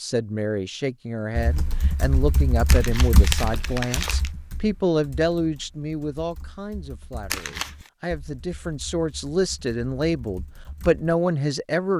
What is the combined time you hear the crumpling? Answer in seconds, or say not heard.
2 s.